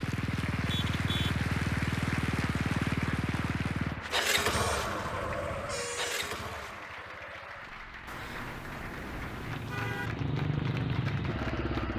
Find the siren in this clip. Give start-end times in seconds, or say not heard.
not heard.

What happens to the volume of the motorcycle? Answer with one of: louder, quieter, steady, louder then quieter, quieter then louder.
quieter then louder.